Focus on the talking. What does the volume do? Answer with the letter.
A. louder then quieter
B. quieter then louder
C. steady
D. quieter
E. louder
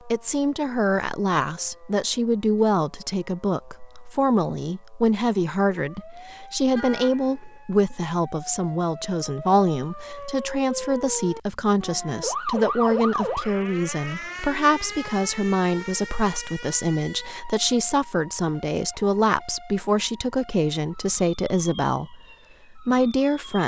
C.